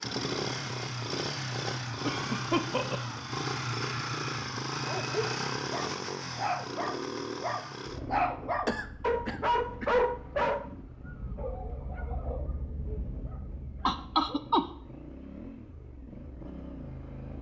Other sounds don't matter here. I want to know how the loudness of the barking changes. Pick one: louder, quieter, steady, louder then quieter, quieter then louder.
louder then quieter.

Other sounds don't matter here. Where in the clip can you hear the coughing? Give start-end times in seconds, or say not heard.
2.0-3.2, 8.7-9.9, 13.8-14.7.